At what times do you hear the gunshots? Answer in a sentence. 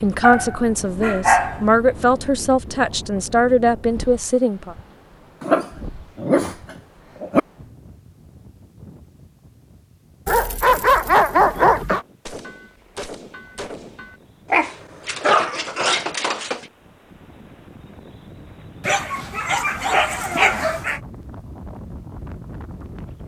You can hear the gunshots from 12.2 to 14.2 s.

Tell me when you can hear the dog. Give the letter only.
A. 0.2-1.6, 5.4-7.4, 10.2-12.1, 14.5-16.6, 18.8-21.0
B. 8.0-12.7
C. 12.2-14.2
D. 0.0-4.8
A.